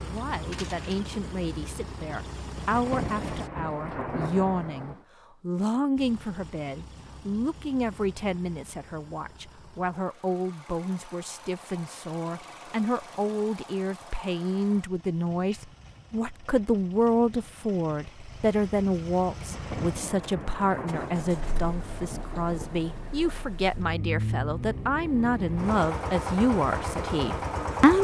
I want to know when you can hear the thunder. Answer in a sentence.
You can hear the thunder from 2.4 to 5.0 s and from 19.2 to 23.6 s.